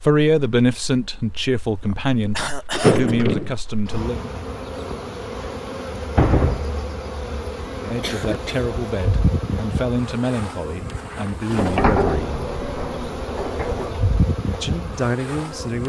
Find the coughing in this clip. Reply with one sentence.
You can hear the coughing from 1.9 to 3.1 s, from 8.0 to 8.7 s and from 13.4 to 13.9 s.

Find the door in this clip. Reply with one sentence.
You can hear the door from 2.7 to 3.5 s, from 5.5 to 6.7 s and from 11.5 to 13.9 s.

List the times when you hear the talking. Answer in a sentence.
You can hear the talking from 0.1 to 4.2 s, from 7.8 to 12.4 s and from 14.6 to 15.8 s.